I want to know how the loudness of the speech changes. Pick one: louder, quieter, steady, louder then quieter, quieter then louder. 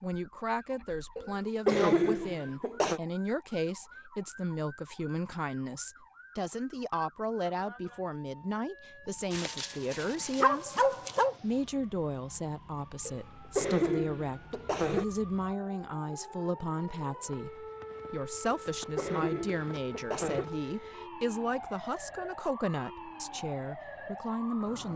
steady.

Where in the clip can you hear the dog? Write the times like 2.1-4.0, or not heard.
9.3-11.3.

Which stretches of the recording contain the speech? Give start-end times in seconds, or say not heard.
0.0-24.9.